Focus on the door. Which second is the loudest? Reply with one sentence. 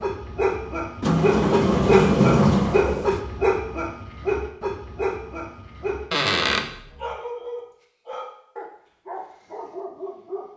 The volume of the door peaks at 2 seconds.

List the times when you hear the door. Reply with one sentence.
The door can be heard from 1.0 to 3.2 s and from 6.1 to 6.7 s.